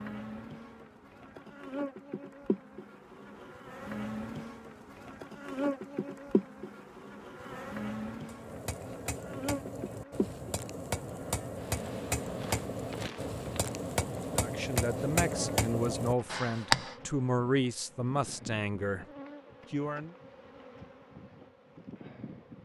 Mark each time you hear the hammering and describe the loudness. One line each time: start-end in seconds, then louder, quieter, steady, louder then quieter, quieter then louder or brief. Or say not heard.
8.2-16.9 louder.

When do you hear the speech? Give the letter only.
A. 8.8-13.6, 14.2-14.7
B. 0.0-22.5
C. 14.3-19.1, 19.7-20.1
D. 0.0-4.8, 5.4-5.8
C.